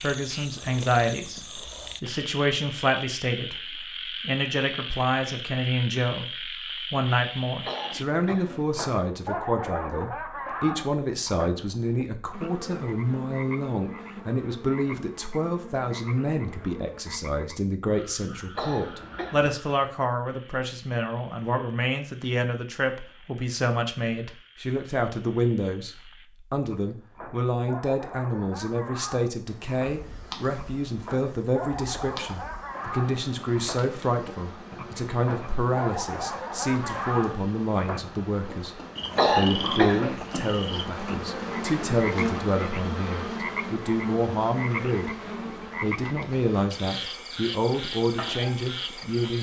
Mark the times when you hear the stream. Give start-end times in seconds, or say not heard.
not heard.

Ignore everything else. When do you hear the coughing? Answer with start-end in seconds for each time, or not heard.
7.6-8.7, 18.5-19.6, 39.1-40.1.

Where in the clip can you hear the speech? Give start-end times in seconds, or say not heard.
0.0-45.1, 45.8-49.3.